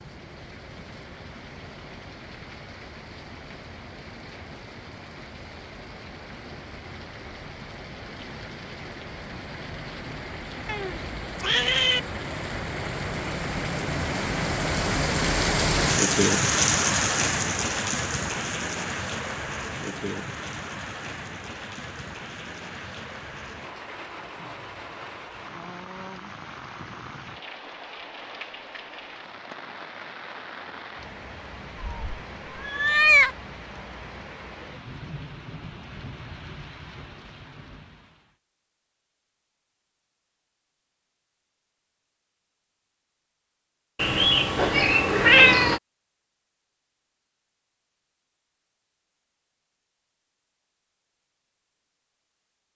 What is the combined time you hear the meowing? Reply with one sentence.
The meowing can be heard for 5 seconds in total.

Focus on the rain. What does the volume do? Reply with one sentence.
The loudness of the rain goes up, then down.